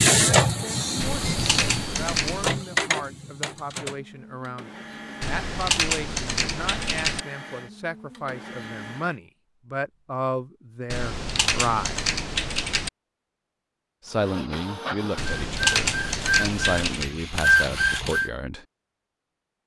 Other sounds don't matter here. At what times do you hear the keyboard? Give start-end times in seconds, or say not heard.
1.0-2.6, 5.2-7.2, 10.9-12.9, 15.2-17.1.